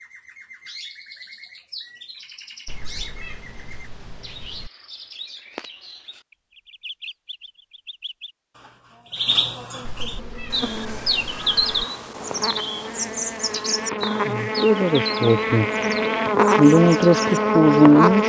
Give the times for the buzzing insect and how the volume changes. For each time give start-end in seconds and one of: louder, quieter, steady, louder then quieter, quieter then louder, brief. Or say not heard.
10.2-18.2 louder.